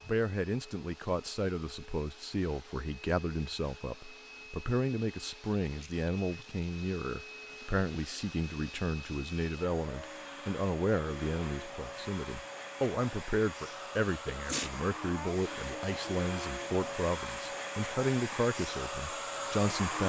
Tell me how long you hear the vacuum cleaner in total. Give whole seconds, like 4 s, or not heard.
20 s.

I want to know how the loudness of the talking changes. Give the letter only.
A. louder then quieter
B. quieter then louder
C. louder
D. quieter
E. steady
E.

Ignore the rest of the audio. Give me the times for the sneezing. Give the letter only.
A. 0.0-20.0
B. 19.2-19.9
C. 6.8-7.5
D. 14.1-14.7
D.